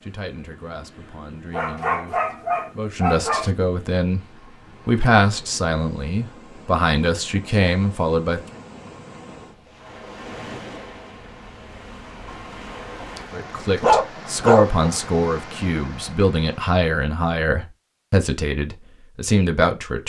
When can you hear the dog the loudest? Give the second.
14 s.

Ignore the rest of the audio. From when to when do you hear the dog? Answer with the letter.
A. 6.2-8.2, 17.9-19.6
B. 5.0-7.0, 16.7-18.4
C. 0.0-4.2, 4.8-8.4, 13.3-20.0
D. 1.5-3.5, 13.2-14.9
D.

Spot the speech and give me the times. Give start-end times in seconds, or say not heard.
0.0-4.2, 4.8-8.4, 13.3-20.0.